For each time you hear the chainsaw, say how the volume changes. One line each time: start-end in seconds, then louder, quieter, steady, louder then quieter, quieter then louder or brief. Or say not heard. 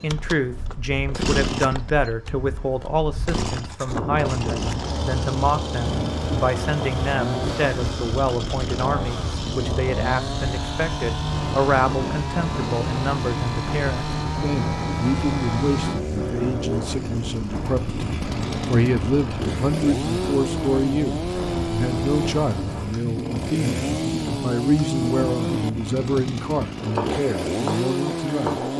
0.0-28.7 steady.